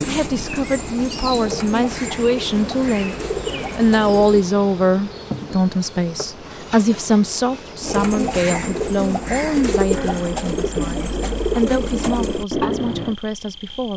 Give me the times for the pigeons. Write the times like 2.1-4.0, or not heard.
0.0-4.5, 7.8-13.2.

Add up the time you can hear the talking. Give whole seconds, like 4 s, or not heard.
14 s.